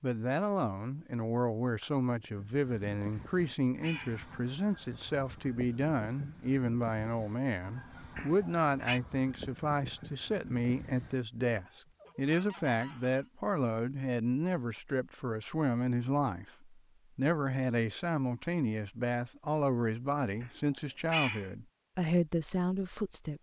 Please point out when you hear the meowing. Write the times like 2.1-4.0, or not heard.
3.1-4.2, 8.2-9.0, 20.4-21.5.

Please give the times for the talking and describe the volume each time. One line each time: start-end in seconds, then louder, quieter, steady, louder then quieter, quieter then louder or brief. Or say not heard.
0.0-23.3 steady.